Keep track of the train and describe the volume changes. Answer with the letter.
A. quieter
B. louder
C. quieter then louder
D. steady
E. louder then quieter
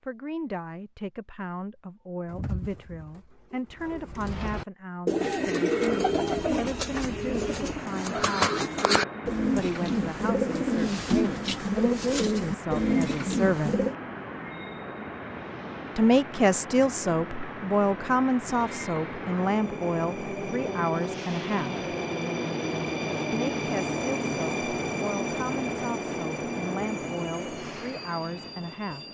B.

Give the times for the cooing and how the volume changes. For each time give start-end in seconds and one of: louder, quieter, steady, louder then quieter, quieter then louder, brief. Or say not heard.
2.2-13.9 louder.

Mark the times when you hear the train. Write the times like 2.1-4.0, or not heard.
5.2-29.0.